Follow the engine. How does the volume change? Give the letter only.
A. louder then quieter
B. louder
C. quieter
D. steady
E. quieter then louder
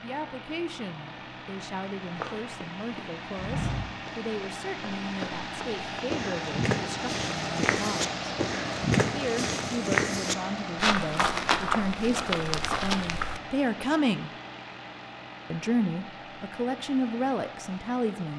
A.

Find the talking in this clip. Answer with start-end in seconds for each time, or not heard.
0.0-8.2, 9.1-14.3, 15.5-18.3.